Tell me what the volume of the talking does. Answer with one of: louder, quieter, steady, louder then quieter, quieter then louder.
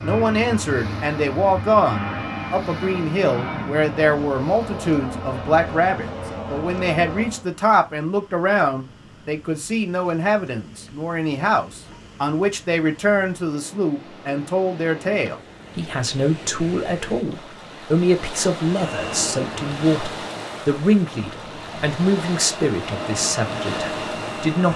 steady.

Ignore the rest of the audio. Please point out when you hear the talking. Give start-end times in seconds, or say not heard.
0.0-24.7.